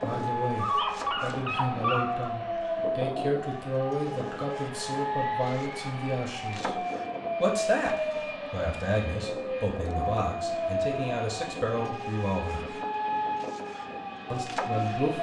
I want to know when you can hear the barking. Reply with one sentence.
The barking can be heard from 0.6 to 2.3 s.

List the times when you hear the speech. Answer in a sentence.
You can hear the speech from 0.0 to 6.8 s, from 7.4 to 12.8 s and from 14.3 to 15.1 s.